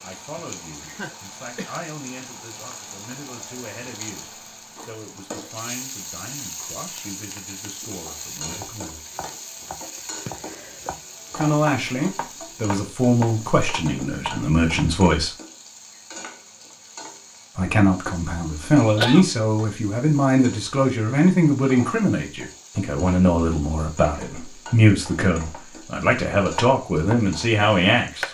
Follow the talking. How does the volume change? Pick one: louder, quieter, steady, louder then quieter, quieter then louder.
louder.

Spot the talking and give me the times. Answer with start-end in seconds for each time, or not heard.
0.0-9.1, 11.3-15.3, 17.6-28.2.